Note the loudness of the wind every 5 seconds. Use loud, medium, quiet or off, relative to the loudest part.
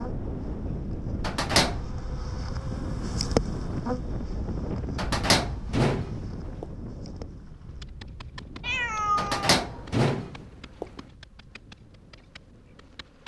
loud, medium, quiet.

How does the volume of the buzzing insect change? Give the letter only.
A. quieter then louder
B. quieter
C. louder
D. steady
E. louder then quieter
E.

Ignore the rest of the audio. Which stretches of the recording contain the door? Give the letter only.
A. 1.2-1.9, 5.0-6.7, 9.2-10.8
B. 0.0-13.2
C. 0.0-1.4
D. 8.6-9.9
A.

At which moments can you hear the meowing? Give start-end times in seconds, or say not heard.
8.6-9.9.